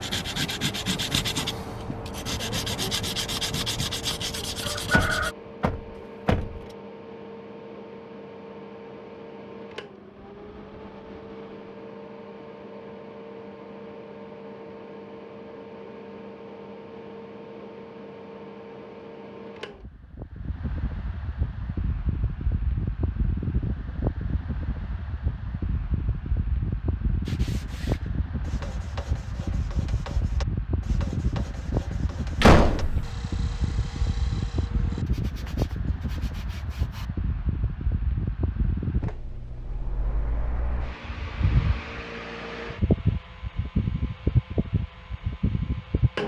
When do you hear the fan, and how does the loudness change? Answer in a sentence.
You can hear the fan from 0.0 to 46.2 s, getting louder.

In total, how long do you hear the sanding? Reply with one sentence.
The sanding can be heard for 15 seconds in total.